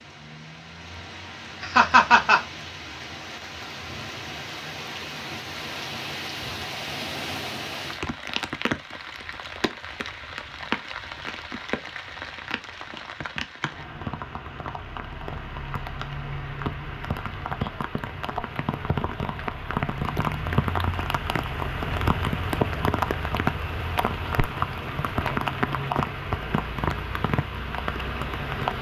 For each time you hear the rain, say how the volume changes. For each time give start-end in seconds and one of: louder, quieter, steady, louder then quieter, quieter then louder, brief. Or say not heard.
0.0-28.7 louder.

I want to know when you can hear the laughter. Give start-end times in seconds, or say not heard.
1.6-2.4.